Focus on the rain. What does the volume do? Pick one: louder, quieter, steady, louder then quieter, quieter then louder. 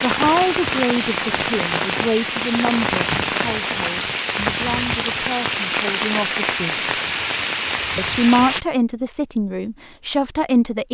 steady.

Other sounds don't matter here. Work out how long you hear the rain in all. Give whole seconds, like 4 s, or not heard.
9 s.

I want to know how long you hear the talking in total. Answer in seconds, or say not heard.
10 s.